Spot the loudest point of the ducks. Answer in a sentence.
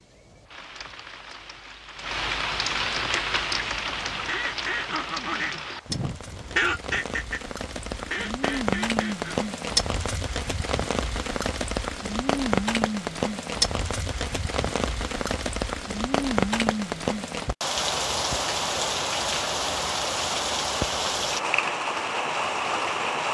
The loudest moment of the ducks is at 7 seconds.